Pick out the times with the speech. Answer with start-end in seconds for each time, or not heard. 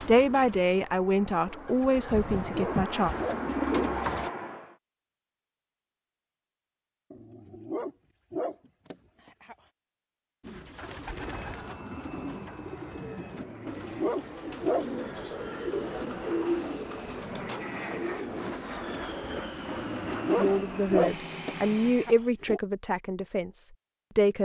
0.1-3.1, 20.2-24.4.